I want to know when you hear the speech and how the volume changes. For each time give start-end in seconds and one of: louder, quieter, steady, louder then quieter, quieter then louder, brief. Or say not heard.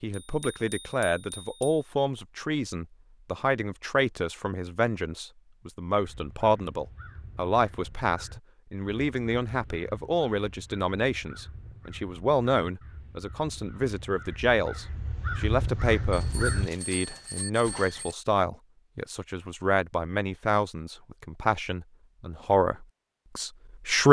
0.0-24.0 steady.